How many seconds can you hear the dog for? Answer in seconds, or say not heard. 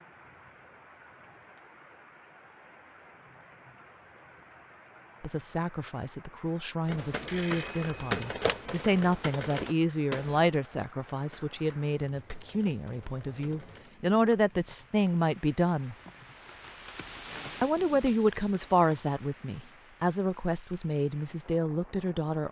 not heard.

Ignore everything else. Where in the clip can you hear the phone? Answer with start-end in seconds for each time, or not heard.
7.2-8.6.